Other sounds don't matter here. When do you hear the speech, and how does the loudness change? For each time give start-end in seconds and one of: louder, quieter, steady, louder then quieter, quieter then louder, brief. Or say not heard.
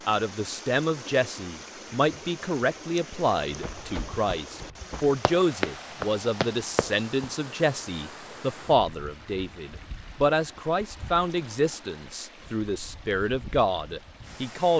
0.1-14.7 steady.